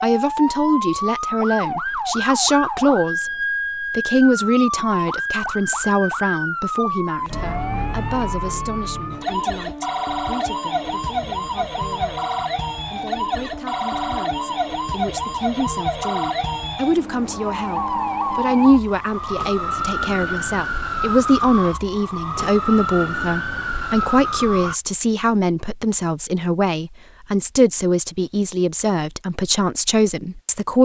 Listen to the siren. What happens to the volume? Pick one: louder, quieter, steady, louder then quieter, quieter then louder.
steady.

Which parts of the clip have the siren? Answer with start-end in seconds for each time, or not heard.
0.0-24.8.